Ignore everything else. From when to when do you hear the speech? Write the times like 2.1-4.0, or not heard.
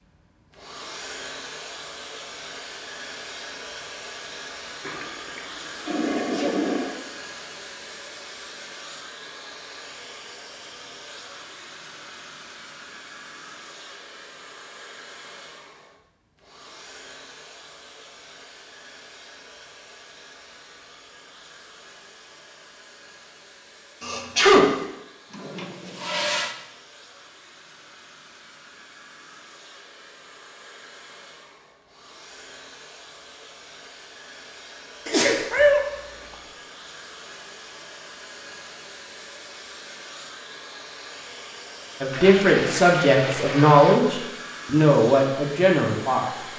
42.0-46.5.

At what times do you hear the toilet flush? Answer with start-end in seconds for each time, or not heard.
4.8-7.0, 25.3-26.6, 42.1-44.0.